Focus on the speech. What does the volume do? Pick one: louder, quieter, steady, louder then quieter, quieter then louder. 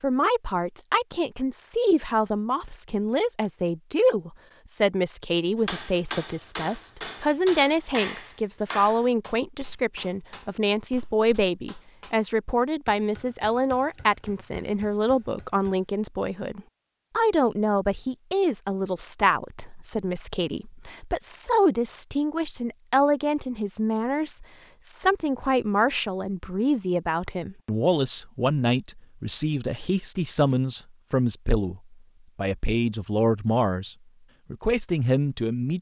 steady.